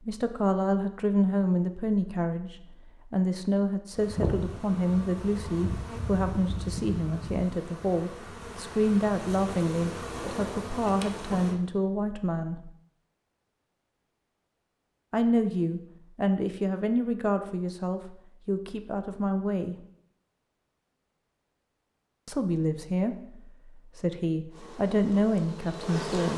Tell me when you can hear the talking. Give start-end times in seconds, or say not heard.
0.0-12.7, 15.1-19.8, 22.2-23.1, 23.8-26.3.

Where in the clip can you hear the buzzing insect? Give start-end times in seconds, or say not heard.
3.9-11.6, 24.5-26.3.